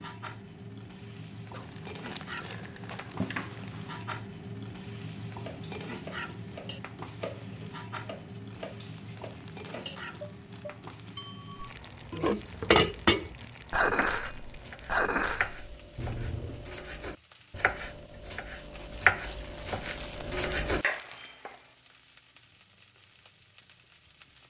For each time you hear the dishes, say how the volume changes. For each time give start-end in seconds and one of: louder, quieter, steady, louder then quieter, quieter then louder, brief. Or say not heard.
5.3-16.8 louder then quieter.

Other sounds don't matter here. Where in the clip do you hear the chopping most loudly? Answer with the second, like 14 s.
19 s.